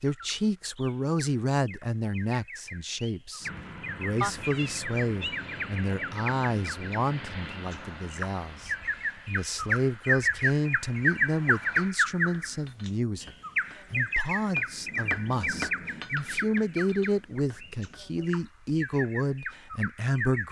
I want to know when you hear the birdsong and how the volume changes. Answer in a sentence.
You can hear the birdsong from 0.0 to 20.4 s, getting louder then quieter.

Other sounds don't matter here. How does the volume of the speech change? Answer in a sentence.
The loudness of the speech stays about the same.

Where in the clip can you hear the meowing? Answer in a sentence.
The meowing can be heard from 4.2 to 5.6 s.